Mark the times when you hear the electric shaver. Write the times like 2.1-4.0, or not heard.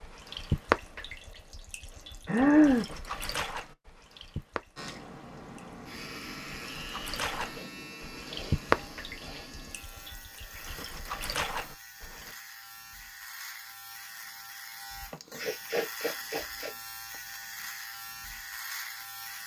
4.8-19.4.